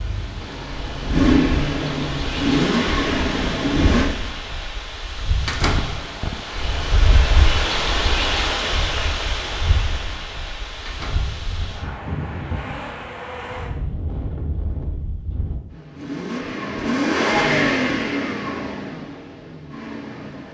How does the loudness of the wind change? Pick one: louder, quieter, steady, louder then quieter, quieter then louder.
louder then quieter.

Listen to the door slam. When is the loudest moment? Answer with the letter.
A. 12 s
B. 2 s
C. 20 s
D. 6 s
D.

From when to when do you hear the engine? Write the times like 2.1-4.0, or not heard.
0.0-4.1, 15.7-20.4.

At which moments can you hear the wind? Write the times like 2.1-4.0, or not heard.
0.0-15.6.